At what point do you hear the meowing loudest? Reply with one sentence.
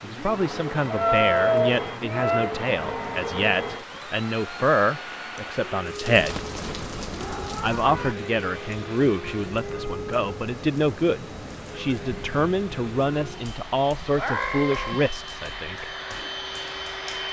The volume of the meowing peaks at 1 second.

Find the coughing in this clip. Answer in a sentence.
The coughing can't be heard in this clip.